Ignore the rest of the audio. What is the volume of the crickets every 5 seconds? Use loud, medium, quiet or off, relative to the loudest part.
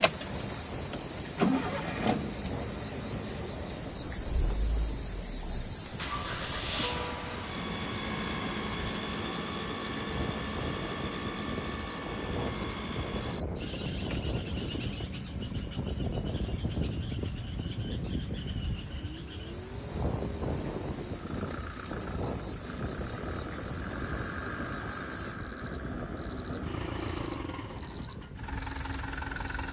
loud, loud, medium, medium, medium, loud.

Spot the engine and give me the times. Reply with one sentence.
The engine can be heard from 0.0 to 29.6 s.